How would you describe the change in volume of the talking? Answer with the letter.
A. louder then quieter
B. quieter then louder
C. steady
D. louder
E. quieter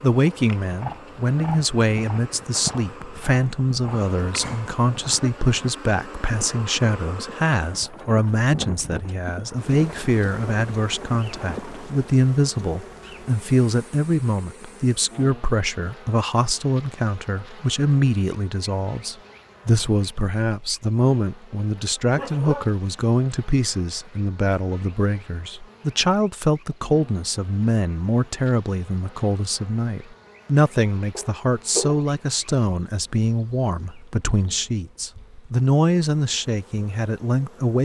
C.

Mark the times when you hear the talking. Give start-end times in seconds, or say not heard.
0.0-37.8.